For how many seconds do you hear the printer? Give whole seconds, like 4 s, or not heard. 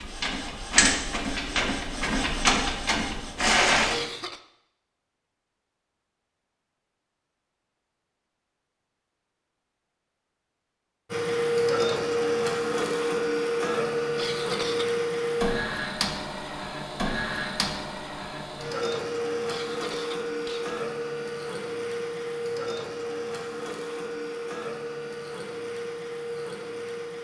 20 s.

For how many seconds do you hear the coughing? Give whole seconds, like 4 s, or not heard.
3 s.